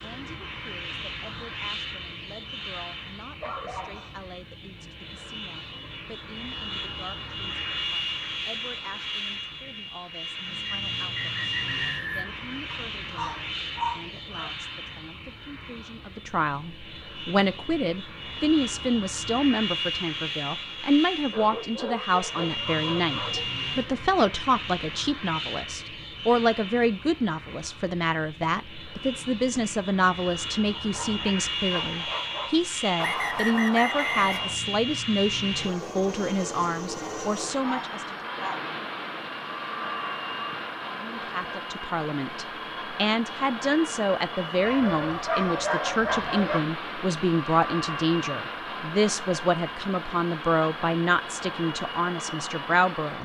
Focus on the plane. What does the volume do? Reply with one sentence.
The volume of the plane stays about the same.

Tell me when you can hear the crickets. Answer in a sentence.
You can't hear the crickets here.